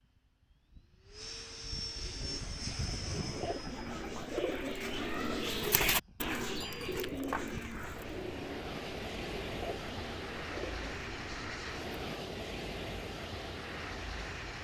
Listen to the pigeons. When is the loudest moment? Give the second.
6 s.